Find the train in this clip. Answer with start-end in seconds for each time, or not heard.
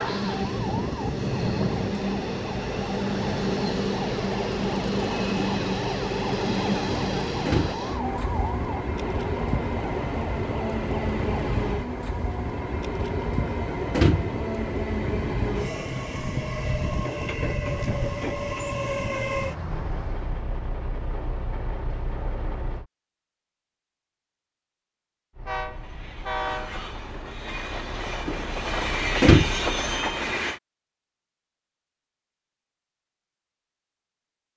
0.0-22.9, 25.4-30.6.